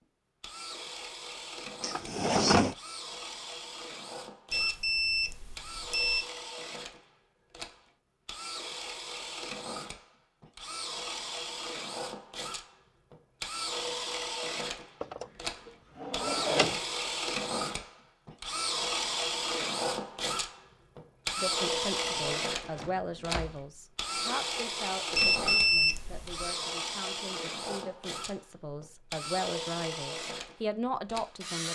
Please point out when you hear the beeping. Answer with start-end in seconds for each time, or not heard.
4.5-6.2, 25.1-26.5.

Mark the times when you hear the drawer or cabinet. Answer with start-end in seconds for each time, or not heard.
1.8-2.8, 15.0-16.8, 21.9-23.6.